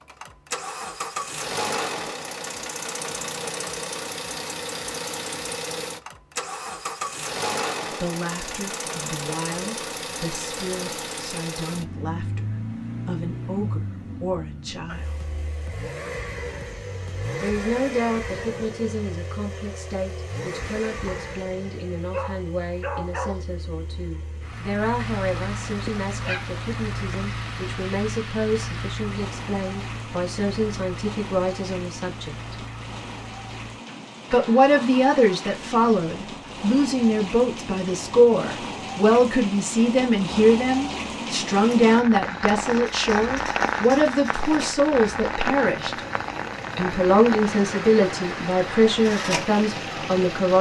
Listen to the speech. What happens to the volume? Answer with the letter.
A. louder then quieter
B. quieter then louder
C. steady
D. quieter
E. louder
E.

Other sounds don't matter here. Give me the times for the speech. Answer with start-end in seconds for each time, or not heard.
8.0-15.1, 17.4-32.4, 34.3-46.0, 46.8-50.5.